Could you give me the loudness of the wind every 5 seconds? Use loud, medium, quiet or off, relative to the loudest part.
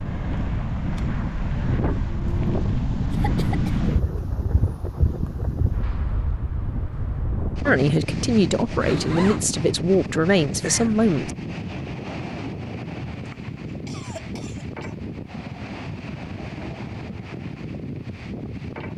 loud, loud, medium, medium.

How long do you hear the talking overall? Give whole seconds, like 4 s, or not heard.
4 s.